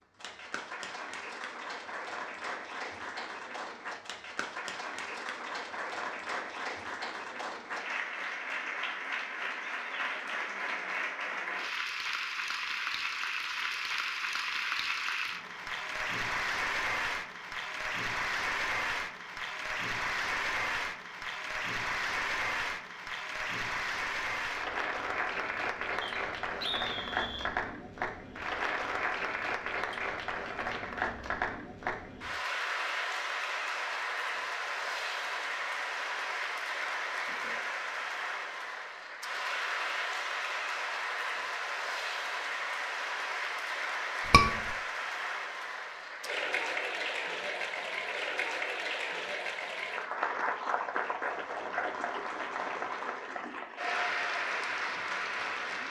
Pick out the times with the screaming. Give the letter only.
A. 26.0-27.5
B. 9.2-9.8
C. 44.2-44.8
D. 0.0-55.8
C.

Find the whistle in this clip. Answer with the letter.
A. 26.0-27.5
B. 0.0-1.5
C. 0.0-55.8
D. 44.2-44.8
A.